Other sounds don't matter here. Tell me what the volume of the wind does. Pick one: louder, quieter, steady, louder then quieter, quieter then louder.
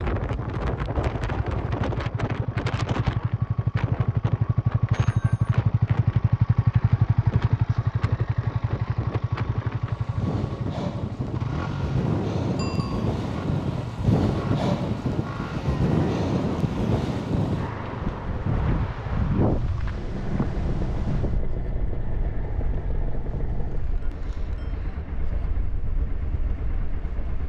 louder then quieter.